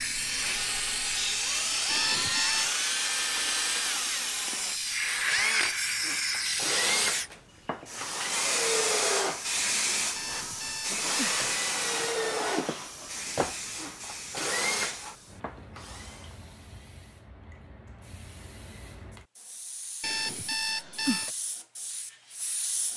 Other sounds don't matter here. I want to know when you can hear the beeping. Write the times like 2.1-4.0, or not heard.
1.9-2.7, 10.2-11.6, 20.0-21.3.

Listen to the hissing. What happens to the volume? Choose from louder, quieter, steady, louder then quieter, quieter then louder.
quieter.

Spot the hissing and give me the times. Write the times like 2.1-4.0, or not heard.
0.0-22.9.